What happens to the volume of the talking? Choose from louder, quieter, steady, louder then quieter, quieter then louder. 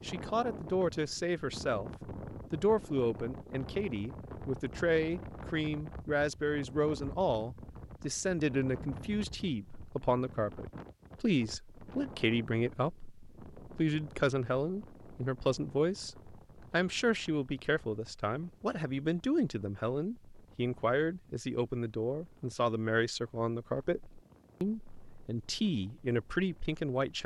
steady.